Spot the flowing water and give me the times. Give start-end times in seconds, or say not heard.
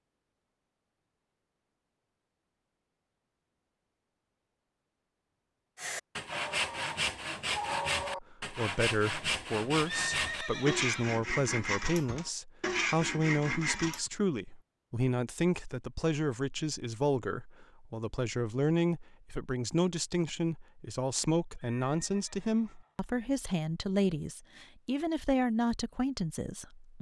not heard.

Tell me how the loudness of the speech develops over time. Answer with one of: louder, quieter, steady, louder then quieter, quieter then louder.
steady.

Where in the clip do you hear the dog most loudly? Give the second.
8 s.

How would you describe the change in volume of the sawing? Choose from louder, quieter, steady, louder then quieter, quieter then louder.
steady.